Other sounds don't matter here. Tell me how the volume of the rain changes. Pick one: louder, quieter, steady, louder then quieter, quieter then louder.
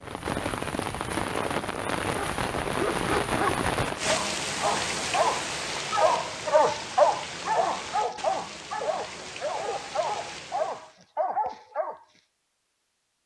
quieter.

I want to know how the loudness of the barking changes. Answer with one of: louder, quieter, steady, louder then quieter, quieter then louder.
louder then quieter.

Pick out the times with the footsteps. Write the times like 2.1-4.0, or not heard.
not heard.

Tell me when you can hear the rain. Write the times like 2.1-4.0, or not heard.
0.0-10.9.